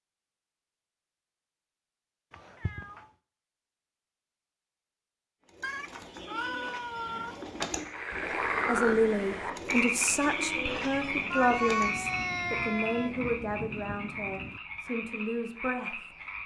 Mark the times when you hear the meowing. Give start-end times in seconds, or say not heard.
2.3-3.0, 5.6-7.3, 11.3-13.1.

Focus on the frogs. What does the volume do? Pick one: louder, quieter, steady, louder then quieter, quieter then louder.
quieter.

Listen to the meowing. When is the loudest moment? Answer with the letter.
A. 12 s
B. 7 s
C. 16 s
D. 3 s
A.